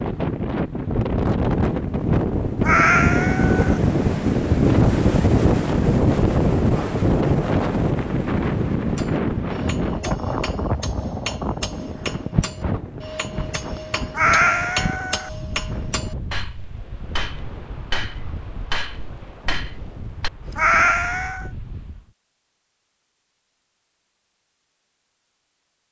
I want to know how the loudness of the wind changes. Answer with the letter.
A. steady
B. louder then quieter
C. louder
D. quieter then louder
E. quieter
E.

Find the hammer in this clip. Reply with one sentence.
The hammer can be heard from 8.9 to 20.3 s.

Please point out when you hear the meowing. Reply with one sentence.
The meowing can be heard from 2.6 to 3.8 s, from 14.2 to 15.3 s and from 20.6 to 21.5 s.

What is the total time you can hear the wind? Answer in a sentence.
The wind can be heard for 22 seconds in total.